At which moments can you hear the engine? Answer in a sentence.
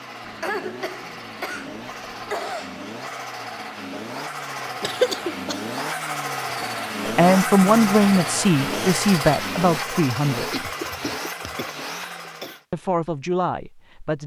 The engine can be heard from 0.0 to 12.7 s.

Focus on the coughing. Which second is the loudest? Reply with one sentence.
The volume of the coughing peaks at 5 seconds.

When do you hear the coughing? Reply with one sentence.
You can hear the coughing from 0.2 to 2.8 s, from 4.8 to 5.6 s and from 10.5 to 12.6 s.